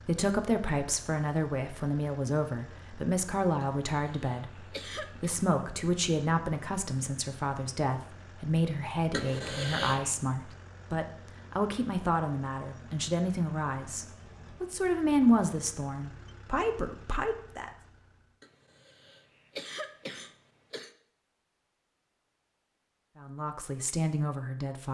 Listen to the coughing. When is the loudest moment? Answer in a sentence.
The volume of the coughing peaks at 10 seconds.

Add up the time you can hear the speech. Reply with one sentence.
You can hear the speech for 19 seconds altogether.